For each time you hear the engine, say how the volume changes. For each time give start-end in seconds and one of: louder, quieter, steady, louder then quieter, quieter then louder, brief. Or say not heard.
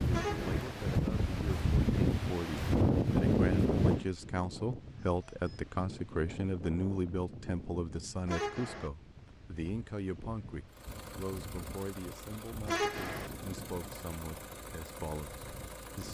10.7-16.0 steady.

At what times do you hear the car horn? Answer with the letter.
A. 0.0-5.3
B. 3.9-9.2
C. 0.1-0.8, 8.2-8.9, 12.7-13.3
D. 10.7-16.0
C.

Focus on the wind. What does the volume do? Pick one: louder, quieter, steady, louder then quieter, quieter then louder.
quieter.